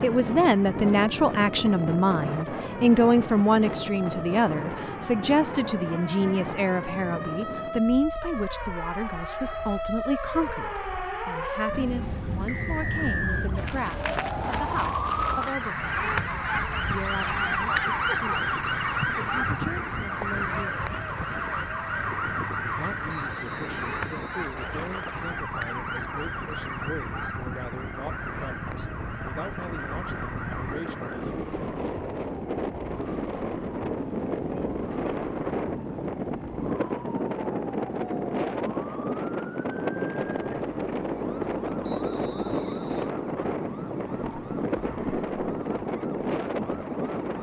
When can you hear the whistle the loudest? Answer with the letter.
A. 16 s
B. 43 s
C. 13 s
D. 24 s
C.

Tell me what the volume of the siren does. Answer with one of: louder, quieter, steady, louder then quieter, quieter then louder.
louder then quieter.